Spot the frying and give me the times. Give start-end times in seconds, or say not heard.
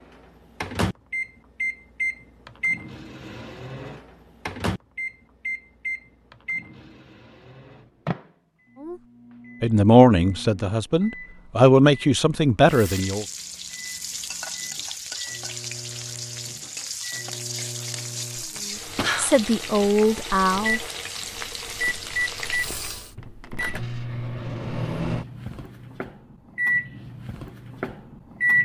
12.6-23.1.